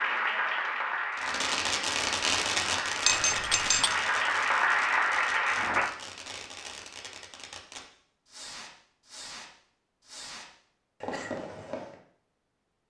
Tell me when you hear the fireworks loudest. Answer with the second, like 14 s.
2 s.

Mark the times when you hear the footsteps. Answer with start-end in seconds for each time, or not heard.
not heard.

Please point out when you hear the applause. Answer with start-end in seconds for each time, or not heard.
0.0-5.9.